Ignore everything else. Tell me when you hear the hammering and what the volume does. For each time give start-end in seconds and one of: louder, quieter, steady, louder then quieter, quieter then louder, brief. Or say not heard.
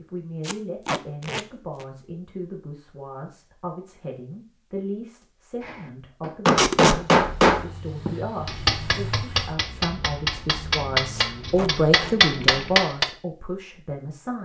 5.6-13.1 quieter then louder.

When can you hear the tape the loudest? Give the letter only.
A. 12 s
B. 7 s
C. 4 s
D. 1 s
B.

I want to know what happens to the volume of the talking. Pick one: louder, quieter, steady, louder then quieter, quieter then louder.
louder.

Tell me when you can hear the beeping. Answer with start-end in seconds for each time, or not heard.
not heard.